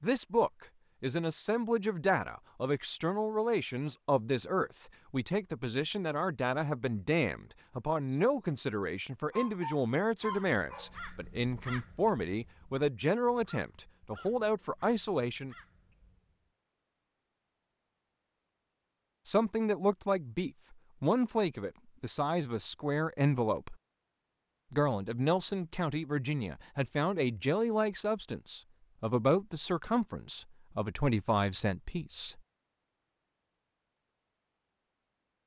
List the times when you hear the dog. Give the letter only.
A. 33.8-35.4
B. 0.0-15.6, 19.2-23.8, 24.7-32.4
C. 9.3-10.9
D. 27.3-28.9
C.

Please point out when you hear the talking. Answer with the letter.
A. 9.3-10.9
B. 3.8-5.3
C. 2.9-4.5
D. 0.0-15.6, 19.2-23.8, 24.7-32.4
D.